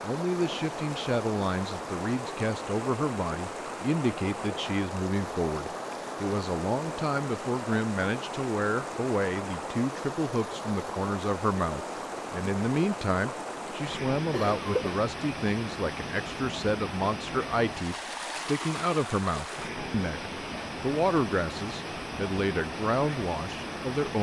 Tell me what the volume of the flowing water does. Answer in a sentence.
The loudness of the flowing water stays about the same.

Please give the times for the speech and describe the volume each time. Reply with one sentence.
You can hear the speech from 0.0 to 24.1 s, at a steady volume.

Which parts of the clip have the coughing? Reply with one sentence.
You can hear the coughing from 14.3 to 15.0 s.